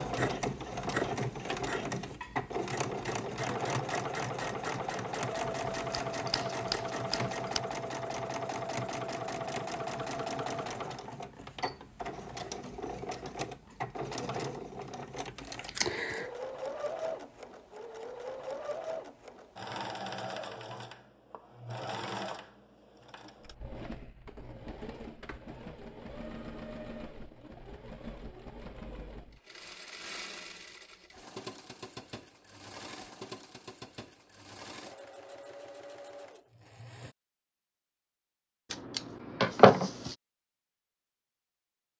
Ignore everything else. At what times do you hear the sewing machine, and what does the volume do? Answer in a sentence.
The sewing machine can be heard from 0.0 to 37.1 s, getting quieter.